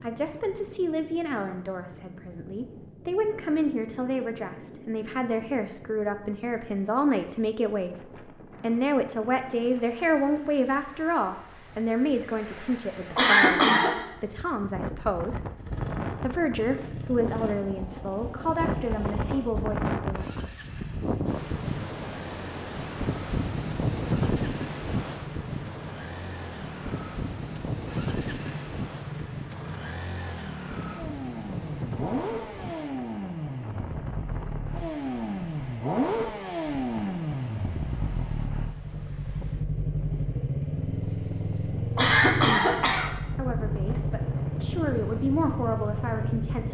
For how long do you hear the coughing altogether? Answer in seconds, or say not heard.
2 s.